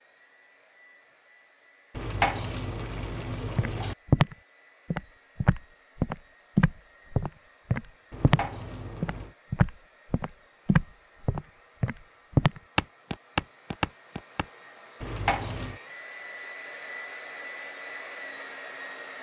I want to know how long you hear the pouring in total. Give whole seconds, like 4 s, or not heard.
4 s.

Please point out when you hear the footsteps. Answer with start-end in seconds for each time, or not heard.
3.5-14.4.